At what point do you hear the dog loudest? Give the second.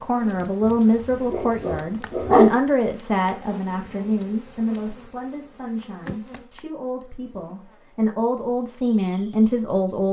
2 s.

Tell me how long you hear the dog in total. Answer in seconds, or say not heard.
2 s.